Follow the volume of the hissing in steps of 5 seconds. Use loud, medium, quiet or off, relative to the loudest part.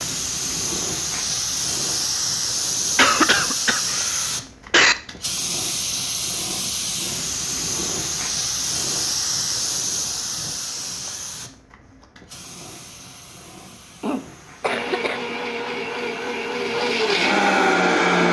loud, loud, medium, quiet.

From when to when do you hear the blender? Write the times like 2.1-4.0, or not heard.
14.6-18.2.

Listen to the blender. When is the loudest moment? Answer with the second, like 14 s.
18 s.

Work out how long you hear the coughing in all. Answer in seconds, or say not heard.
3 s.